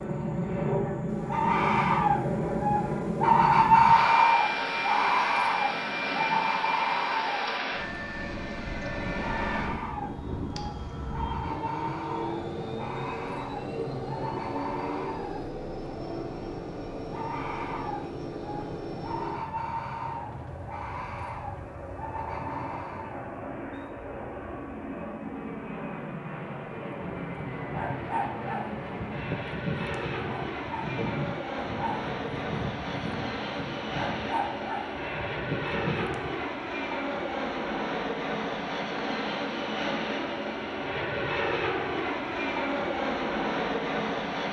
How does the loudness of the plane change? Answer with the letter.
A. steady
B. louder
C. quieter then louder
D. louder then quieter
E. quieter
C.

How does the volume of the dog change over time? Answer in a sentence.
The volume of the dog stays about the same.